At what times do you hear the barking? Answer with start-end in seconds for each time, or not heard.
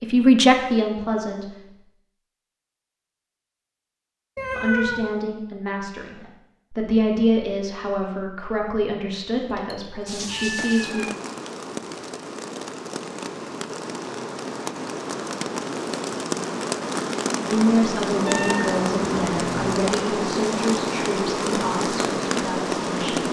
not heard.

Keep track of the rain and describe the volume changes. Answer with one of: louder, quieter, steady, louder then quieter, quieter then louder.
louder.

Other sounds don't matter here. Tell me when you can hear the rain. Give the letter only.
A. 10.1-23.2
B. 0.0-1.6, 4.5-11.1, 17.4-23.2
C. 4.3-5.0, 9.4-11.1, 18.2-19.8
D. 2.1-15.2
A.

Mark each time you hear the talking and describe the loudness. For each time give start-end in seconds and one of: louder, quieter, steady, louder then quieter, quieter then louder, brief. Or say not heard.
0.0-1.6 brief
4.5-11.1 louder then quieter
17.4-23.2 quieter.